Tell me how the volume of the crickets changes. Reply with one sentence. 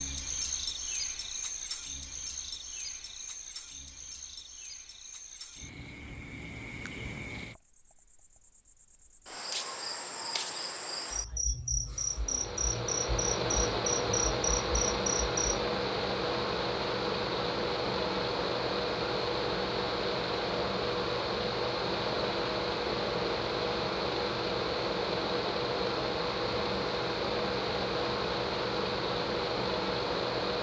The volume of the crickets goes down, then up.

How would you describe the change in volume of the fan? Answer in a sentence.
The volume of the fan stays about the same.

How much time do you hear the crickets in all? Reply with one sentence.
The crickets can be heard for 16 seconds in total.